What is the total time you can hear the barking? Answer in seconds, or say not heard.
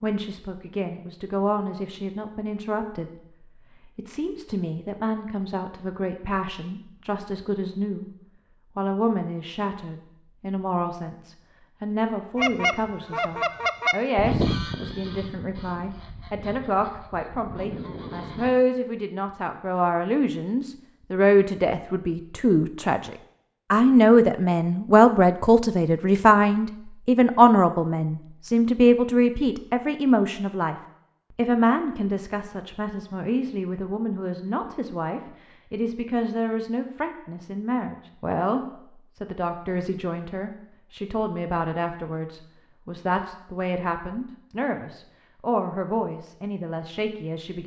not heard.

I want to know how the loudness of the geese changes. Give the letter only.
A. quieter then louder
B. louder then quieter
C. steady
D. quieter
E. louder
A.